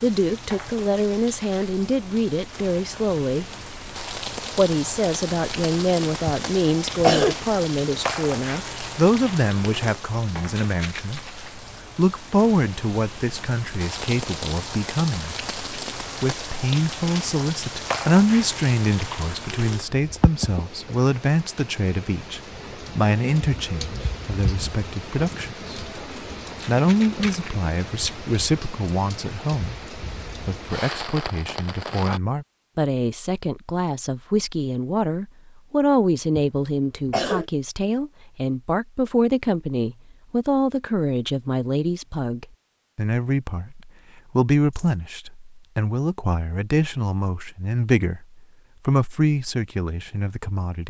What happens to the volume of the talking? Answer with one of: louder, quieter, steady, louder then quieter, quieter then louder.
steady.